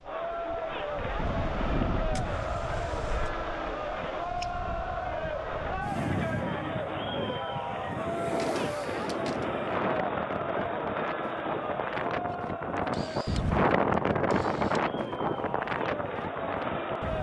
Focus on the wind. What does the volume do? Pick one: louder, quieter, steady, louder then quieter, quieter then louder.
louder.